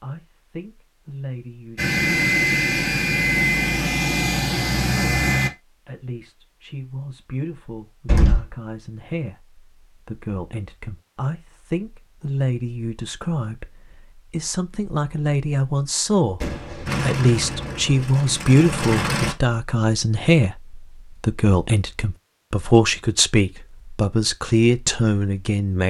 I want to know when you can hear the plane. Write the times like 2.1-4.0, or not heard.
1.8-5.5, 16.9-19.4.